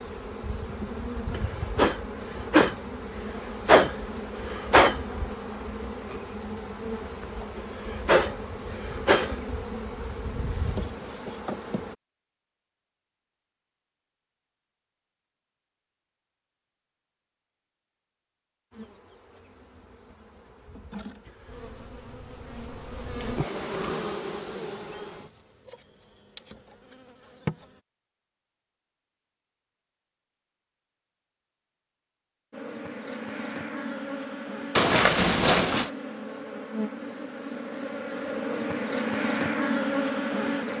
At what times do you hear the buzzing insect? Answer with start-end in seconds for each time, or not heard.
0.0-11.9, 18.7-27.8, 32.5-40.7.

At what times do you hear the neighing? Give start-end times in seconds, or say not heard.
34.8-35.9.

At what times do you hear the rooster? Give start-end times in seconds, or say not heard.
not heard.